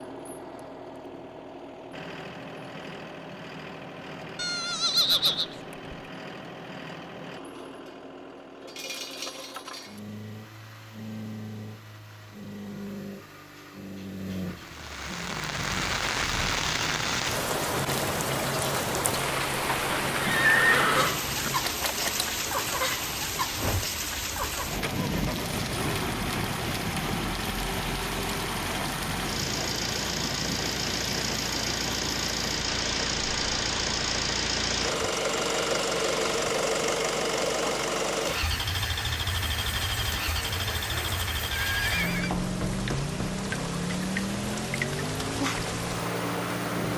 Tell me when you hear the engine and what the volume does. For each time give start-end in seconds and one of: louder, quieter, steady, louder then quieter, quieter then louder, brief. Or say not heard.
0.0-46.9 louder.